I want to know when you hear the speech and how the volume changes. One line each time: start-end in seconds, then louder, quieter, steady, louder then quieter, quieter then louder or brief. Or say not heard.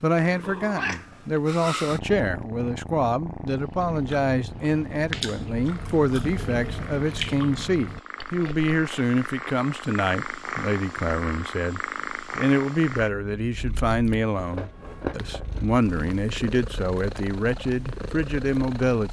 0.0-19.0 steady.